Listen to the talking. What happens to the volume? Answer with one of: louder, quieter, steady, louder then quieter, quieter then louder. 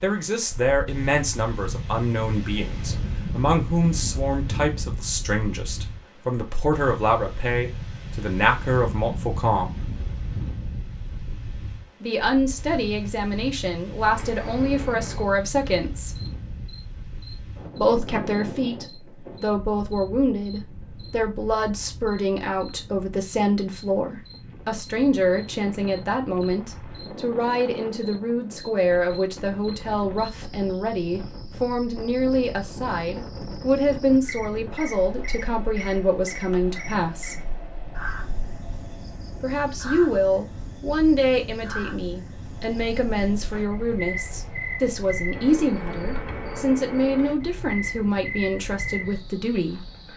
steady.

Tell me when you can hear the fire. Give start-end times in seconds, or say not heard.
not heard.